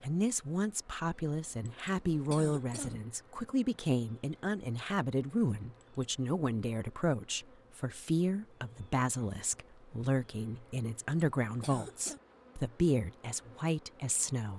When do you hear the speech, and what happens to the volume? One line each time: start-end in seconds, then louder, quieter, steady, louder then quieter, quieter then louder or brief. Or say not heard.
0.0-14.5 steady.